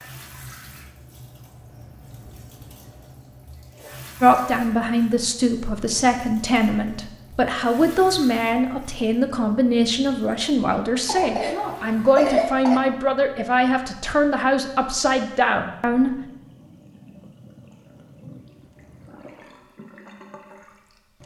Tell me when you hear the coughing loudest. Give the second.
12 s.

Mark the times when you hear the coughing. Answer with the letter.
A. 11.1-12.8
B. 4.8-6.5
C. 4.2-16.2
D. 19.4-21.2
A.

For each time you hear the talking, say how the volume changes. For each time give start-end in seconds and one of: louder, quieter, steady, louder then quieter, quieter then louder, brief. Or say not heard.
4.2-16.2 steady.